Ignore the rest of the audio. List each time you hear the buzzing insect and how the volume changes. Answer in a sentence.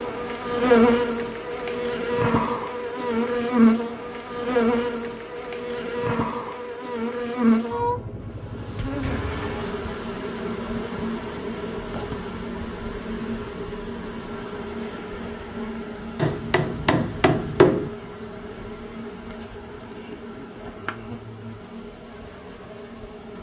You can hear the buzzing insect from 0.0 to 23.3 s, getting quieter.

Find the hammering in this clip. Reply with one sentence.
The hammering can be heard from 16.1 to 17.9 s.